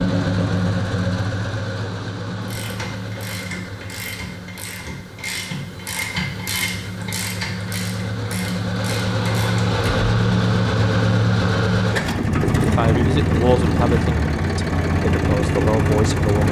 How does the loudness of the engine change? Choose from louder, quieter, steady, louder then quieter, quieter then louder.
quieter then louder.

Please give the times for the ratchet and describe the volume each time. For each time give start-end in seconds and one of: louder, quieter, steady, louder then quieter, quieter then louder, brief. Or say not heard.
2.5-9.8 louder then quieter.